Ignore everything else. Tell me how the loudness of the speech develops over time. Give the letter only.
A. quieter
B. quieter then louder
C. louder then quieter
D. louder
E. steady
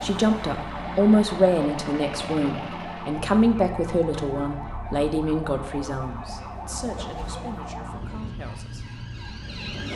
A.